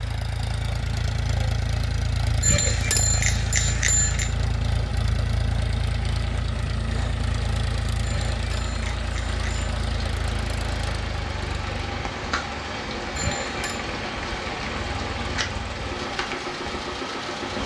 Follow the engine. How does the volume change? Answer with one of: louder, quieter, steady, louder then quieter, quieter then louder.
quieter.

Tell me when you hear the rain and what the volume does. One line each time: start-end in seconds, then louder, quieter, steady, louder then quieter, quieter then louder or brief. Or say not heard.
0.0-17.6 louder.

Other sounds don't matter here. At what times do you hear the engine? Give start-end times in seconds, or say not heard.
0.0-17.6.